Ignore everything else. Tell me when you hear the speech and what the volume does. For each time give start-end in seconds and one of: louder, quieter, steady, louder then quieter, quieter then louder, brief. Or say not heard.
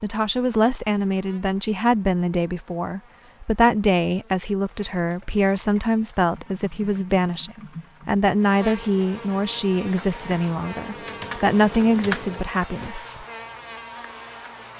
0.0-13.2 steady.